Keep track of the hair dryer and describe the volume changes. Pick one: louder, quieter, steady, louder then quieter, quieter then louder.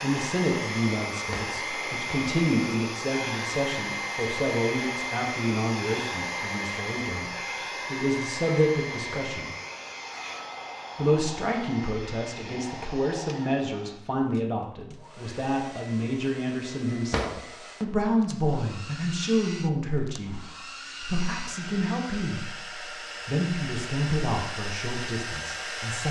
quieter then louder.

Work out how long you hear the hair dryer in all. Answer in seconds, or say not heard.
26 s.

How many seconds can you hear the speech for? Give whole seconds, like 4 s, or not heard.
24 s.